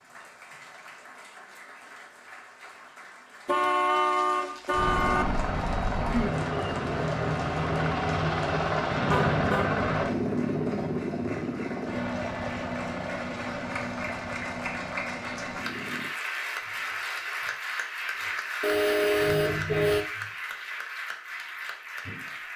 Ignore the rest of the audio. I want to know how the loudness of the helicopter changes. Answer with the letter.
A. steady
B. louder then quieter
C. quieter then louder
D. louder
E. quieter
E.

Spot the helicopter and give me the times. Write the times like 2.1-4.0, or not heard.
4.7-16.1.